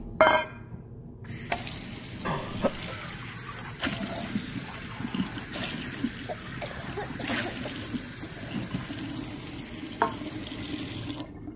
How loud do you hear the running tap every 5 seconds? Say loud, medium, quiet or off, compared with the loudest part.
loud, medium, loud.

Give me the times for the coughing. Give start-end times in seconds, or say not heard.
2.2-2.9, 6.2-7.8.